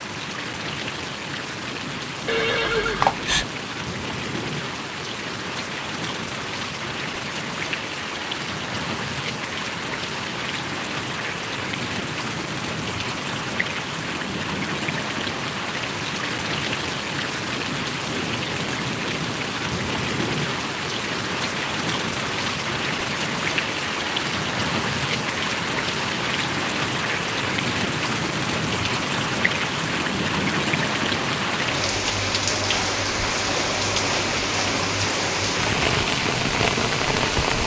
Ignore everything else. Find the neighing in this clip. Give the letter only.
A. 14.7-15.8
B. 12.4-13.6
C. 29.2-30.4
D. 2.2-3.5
D.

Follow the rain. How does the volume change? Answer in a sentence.
The volume of the rain goes up.